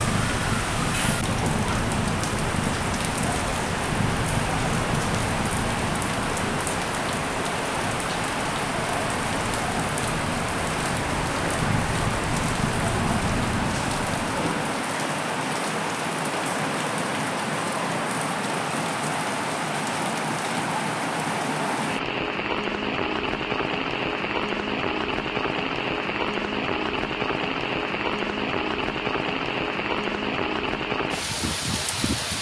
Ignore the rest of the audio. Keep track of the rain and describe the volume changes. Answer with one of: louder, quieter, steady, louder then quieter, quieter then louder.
steady.